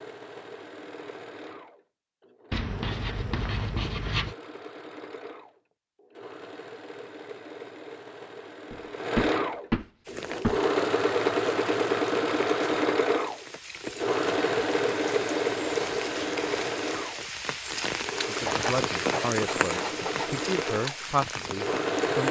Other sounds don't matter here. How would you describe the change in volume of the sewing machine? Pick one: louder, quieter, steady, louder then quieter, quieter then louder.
louder then quieter.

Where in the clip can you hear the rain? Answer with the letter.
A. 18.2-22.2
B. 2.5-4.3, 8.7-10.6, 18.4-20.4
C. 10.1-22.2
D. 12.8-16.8
C.